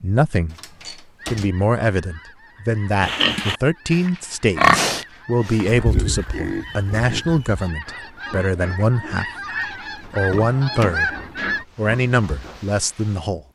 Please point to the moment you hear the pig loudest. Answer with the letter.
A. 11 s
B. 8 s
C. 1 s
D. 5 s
D.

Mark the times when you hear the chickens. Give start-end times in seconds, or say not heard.
1.1-11.7.